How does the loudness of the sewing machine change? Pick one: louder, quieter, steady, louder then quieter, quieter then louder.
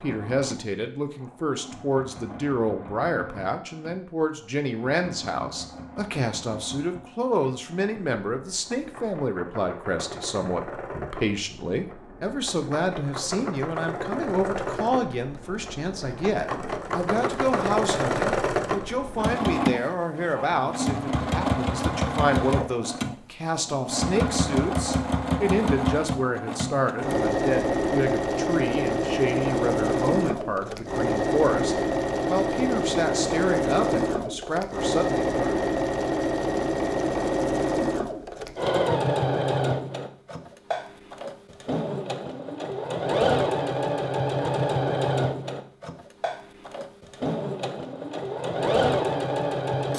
louder.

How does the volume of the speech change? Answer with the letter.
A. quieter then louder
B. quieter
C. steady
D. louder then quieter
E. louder
C.